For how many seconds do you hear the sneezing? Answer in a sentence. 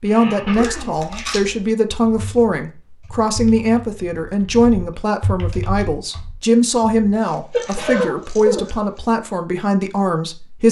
You can hear the sneezing for 3 seconds altogether.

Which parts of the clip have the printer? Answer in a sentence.
You can't hear the printer here.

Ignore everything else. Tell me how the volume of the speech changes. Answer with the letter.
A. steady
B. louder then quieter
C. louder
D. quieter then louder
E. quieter
A.